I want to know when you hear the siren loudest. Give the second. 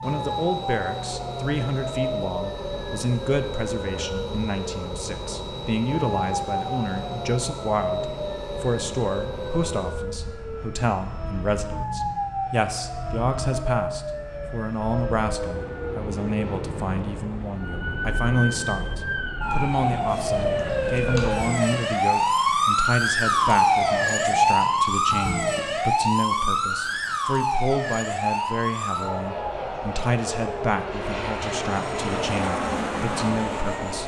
24 s.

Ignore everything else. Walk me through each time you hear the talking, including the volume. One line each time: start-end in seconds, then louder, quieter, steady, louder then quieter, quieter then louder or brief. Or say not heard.
0.0-34.0 steady.